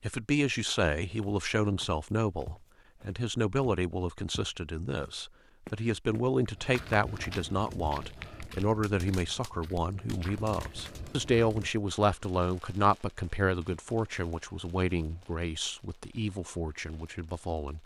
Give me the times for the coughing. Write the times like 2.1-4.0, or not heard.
not heard.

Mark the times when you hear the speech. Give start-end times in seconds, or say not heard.
0.0-17.8.